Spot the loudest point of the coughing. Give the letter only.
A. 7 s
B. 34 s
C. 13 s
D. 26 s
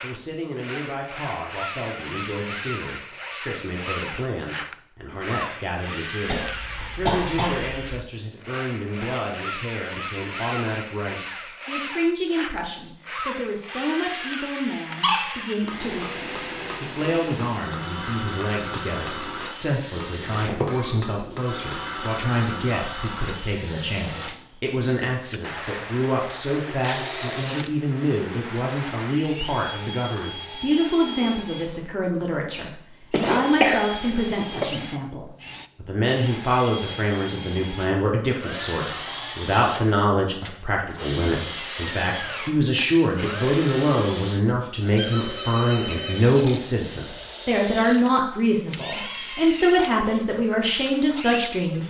B.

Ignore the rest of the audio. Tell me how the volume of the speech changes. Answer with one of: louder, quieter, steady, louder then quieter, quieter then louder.
louder.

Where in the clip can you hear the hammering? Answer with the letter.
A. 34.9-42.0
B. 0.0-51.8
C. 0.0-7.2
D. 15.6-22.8
D.